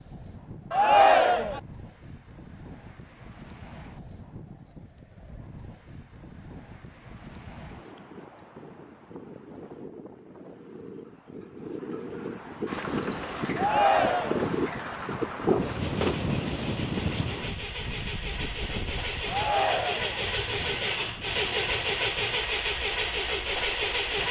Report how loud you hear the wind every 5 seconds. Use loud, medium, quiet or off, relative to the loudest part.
quiet, quiet, loud, loud, quiet.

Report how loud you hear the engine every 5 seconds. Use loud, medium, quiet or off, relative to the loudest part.
off, off, medium, medium, loud.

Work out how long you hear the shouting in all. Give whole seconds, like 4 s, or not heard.
3 s.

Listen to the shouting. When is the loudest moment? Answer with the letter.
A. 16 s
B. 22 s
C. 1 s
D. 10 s
C.